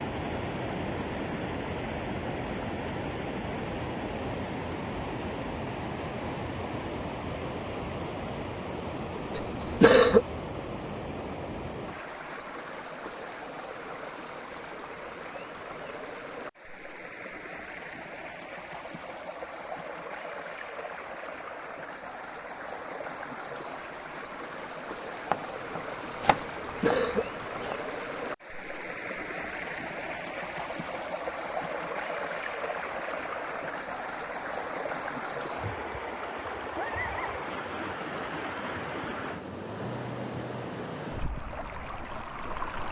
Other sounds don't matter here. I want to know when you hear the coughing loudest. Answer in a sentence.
The volume of the coughing peaks at 10 seconds.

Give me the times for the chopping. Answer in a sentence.
The chopping can be heard from 25.3 to 27.8 s.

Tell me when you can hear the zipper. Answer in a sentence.
You can't hear the zipper here.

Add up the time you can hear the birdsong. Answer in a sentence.
The birdsong can't be heard in this clip.